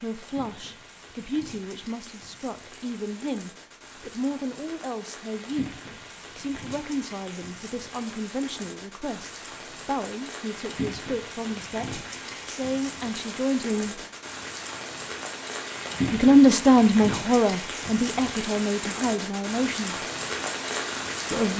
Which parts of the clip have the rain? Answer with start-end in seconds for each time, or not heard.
0.0-21.5.